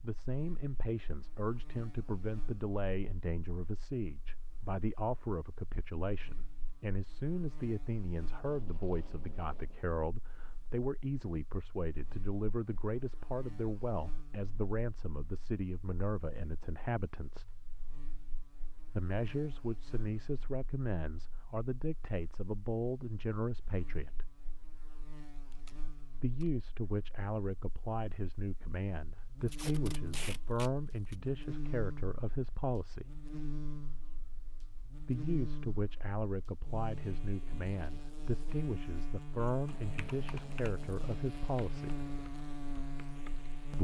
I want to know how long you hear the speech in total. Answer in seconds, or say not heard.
37 s.